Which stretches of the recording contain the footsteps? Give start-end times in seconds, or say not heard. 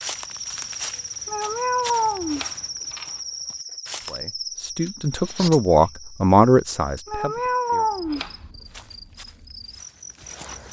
0.0-4.2, 8.7-10.6.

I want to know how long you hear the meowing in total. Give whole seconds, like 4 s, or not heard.
3 s.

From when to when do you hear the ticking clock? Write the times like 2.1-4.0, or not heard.
not heard.